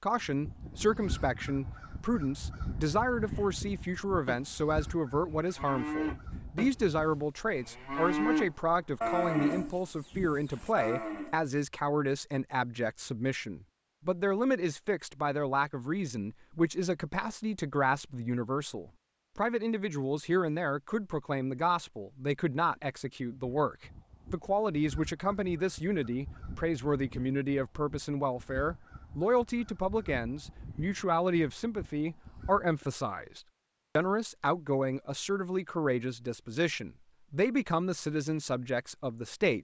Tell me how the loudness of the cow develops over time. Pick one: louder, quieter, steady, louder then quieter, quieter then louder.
louder then quieter.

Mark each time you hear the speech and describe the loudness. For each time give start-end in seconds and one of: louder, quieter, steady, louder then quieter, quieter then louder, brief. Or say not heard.
0.0-39.5 steady.